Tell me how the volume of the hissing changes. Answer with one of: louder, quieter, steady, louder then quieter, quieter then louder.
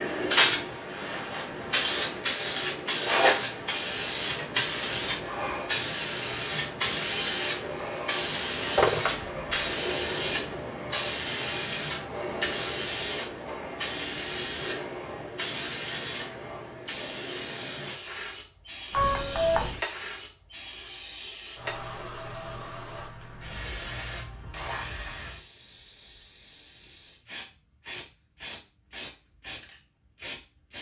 quieter.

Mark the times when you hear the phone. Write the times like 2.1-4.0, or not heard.
8.8-9.6, 18.9-19.8.